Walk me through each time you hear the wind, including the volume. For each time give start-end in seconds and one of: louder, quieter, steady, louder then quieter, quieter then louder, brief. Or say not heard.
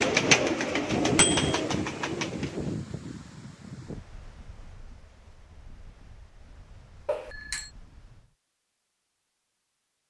0.0-8.3 quieter.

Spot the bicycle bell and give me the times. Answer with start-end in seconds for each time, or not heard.
1.1-1.6, 7.0-7.7.